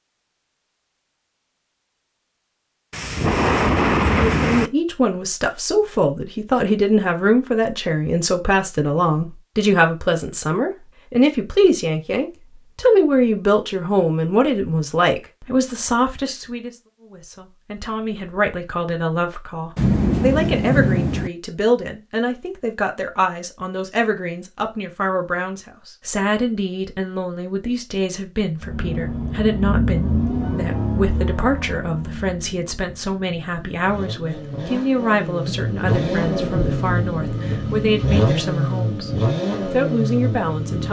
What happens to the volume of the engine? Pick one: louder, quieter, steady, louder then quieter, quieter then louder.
quieter then louder.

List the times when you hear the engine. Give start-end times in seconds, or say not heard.
28.6-40.8.